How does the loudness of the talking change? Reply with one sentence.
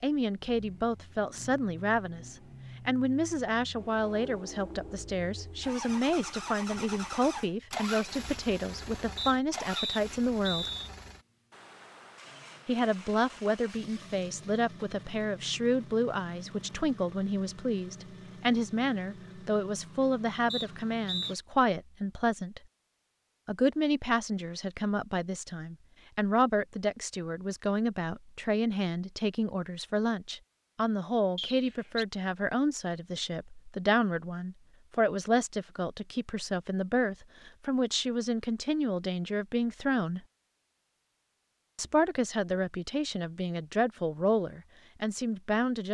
The loudness of the talking stays about the same.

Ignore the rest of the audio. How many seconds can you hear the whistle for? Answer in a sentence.
You can hear the whistle for 3 seconds altogether.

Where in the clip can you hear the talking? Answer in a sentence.
You can hear the talking from 0.0 to 10.7 s, from 12.7 to 22.6 s, from 23.4 to 40.2 s and from 41.8 to 45.9 s.